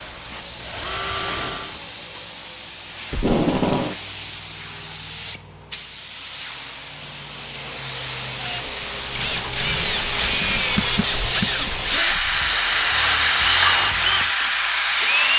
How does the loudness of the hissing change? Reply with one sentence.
The volume of the hissing goes up.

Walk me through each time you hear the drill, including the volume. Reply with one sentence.
You can hear the drill briefly from 0.0 to 1.8 s; and from 8.3 to 15.3 s, at a steady volume.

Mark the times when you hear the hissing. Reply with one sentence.
The hissing can be heard from 0.0 to 15.3 s.